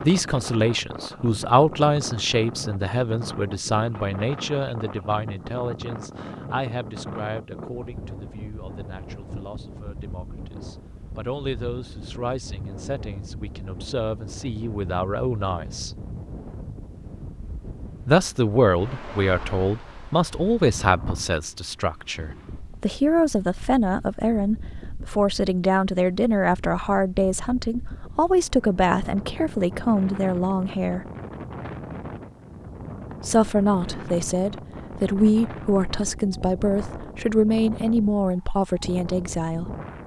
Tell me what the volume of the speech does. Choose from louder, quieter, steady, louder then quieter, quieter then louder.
quieter then louder.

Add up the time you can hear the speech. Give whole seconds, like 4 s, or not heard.
35 s.